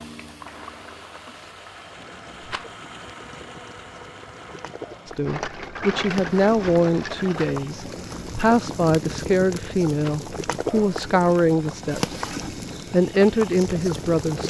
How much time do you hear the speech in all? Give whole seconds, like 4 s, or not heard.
9 s.